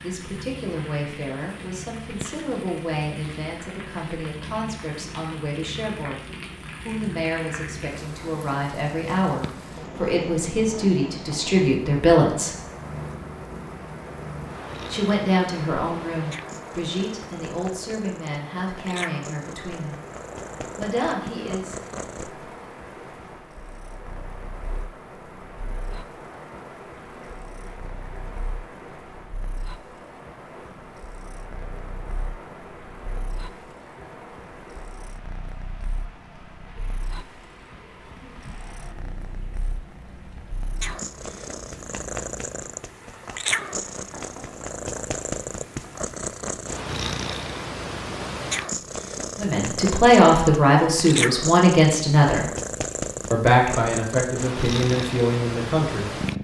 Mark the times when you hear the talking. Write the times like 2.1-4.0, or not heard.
0.0-6.2, 6.8-12.6, 14.9-20.0, 20.8-21.8, 49.4-52.5, 53.3-56.2.